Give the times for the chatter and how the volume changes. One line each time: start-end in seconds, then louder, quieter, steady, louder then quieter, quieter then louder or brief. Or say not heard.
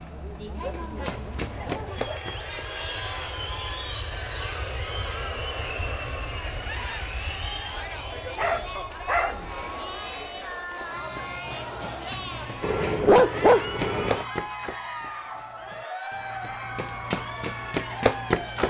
0.0-18.6 steady.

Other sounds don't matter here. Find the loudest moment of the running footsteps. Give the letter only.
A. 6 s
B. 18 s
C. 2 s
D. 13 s
B.